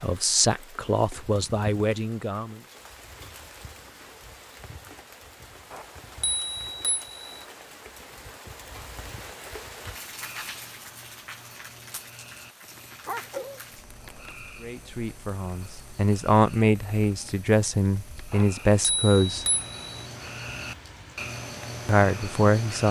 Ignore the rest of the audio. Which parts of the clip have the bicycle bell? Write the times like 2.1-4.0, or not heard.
5.7-7.5, 18.3-20.1.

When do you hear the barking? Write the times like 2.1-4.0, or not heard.
13.1-14.3.